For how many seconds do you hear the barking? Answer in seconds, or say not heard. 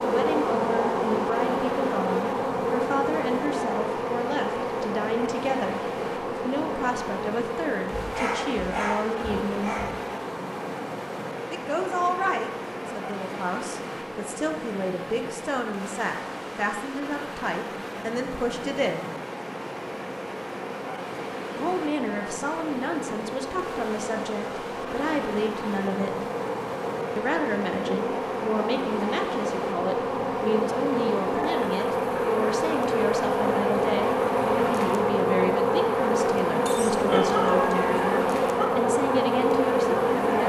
4 s.